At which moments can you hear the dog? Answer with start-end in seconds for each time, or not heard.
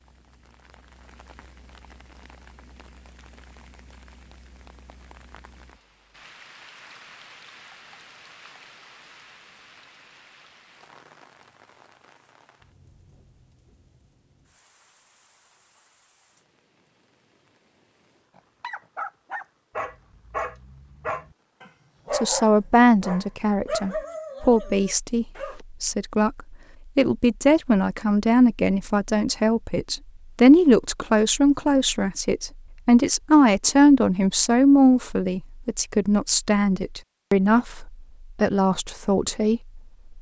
18.4-25.6.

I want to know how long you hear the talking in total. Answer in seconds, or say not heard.
18 s.